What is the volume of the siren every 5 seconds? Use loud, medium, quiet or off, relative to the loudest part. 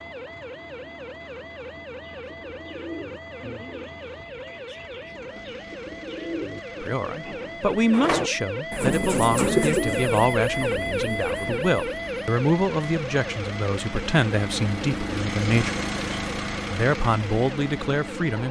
medium, loud, loud, medium.